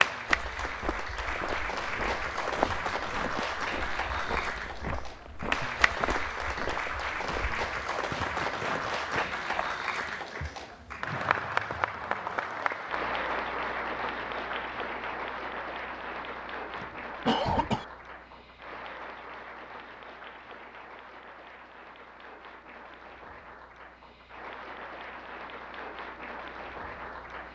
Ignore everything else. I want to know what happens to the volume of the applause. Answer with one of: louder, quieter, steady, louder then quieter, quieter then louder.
quieter.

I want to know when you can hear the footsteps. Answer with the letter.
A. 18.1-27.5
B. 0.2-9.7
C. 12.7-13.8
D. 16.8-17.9
B.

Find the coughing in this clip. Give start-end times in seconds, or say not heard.
16.8-17.9.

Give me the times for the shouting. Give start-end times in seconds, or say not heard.
not heard.